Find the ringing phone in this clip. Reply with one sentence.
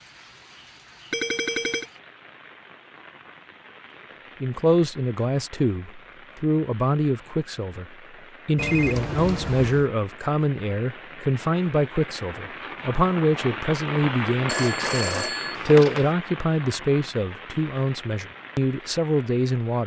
You can hear the ringing phone from 1.1 to 1.9 s, from 8.6 to 9.8 s and from 14.4 to 16.1 s.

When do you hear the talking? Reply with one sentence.
The talking can be heard from 4.4 to 7.8 s and from 8.4 to 19.8 s.